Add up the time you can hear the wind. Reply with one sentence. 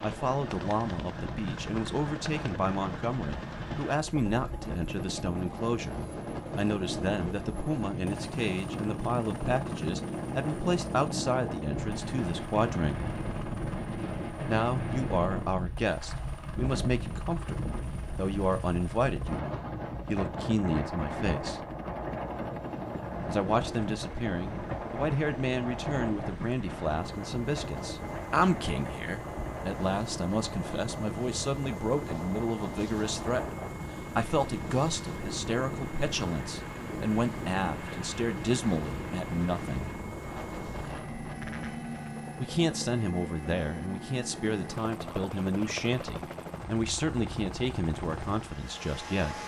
The wind can be heard for 42 seconds in total.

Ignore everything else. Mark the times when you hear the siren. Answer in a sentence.
The siren can't be heard in this clip.